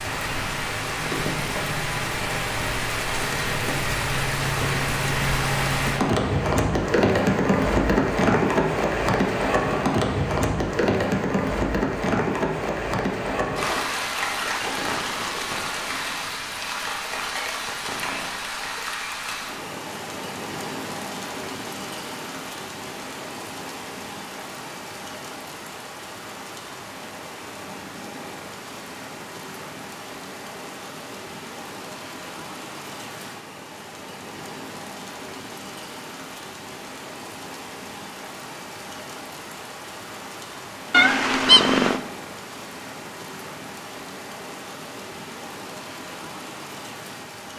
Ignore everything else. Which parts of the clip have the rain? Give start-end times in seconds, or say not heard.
0.0-47.5.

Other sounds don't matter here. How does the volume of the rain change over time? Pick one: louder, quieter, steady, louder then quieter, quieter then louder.
quieter.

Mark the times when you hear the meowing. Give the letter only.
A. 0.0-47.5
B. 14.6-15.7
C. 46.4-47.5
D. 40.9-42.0
D.